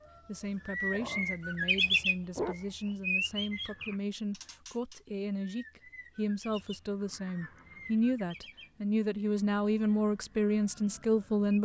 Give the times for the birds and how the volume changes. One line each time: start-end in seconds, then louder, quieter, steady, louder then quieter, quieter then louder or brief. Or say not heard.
0.0-11.5 quieter.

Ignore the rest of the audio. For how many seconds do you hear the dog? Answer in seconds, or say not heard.
2 s.